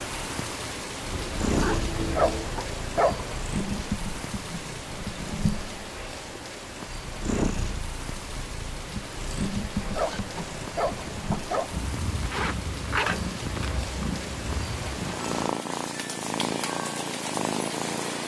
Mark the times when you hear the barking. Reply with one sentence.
The barking can be heard from 1.9 to 3.4 s and from 9.8 to 11.8 s.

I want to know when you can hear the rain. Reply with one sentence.
You can hear the rain from 0.0 to 18.2 s.